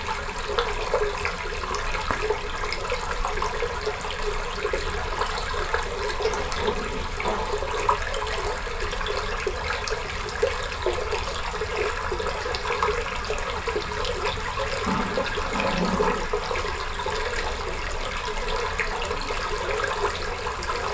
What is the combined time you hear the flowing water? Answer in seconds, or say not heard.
21 s.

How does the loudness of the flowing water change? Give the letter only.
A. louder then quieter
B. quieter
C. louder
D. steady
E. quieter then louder
D.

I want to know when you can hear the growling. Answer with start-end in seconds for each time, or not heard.
6.2-8.0, 14.8-16.3.